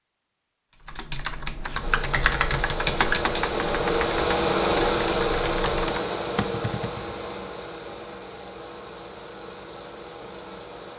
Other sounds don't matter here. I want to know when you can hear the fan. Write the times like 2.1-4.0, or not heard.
1.8-10.9.